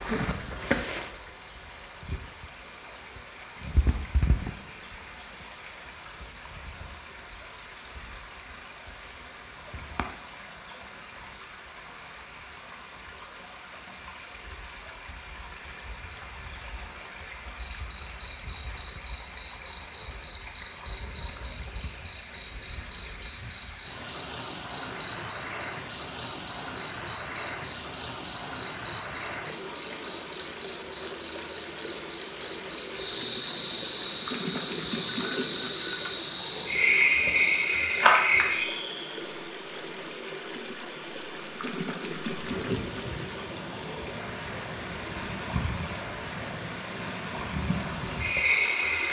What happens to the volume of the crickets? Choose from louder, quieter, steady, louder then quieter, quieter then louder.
steady.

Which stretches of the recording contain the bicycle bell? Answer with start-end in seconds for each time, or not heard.
35.0-36.2.